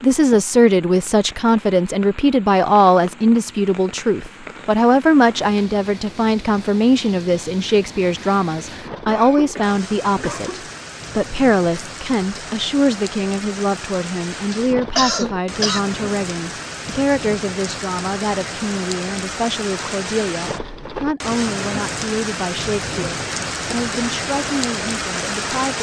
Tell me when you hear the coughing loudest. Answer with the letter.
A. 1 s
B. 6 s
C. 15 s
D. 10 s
C.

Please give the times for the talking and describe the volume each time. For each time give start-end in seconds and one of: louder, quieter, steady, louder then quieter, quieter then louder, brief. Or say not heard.
0.0-25.7 quieter.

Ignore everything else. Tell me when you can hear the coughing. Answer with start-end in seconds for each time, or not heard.
9.1-10.8, 14.5-15.8.